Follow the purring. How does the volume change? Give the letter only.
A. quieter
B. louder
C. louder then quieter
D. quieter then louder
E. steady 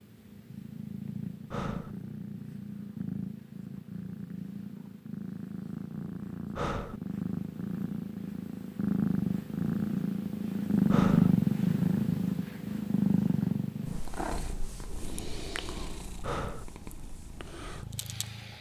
C.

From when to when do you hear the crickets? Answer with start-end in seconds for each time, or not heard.
not heard.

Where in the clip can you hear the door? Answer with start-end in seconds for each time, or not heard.
not heard.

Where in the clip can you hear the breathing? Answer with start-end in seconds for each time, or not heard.
1.5-1.9, 6.5-7.0, 10.9-11.3, 16.2-16.6.